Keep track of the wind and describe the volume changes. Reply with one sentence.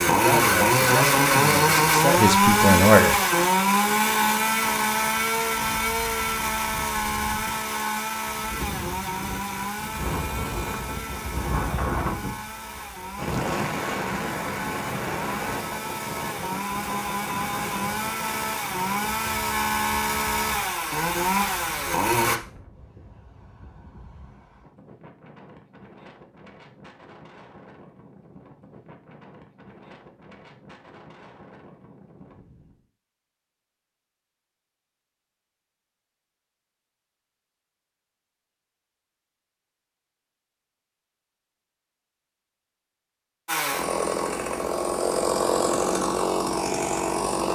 The loudness of the wind goes up, then down.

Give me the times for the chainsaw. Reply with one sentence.
You can hear the chainsaw from 0.0 to 22.4 s and from 43.5 to 47.4 s.